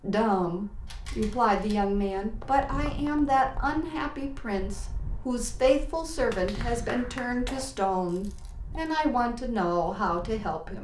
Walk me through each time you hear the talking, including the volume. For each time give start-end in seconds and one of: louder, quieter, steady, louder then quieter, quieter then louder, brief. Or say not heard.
0.0-10.8 steady.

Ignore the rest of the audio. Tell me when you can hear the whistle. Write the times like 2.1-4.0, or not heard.
not heard.